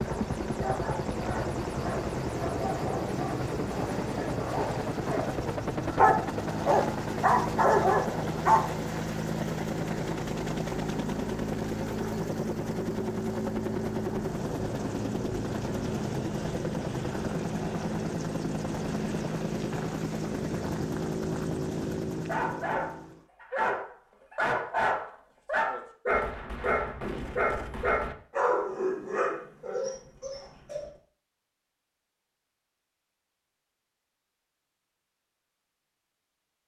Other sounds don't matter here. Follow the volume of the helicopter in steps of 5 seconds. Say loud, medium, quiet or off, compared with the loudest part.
loud, loud, loud, loud, loud, off, off, off.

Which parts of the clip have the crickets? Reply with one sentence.
The crickets can't be heard in this clip.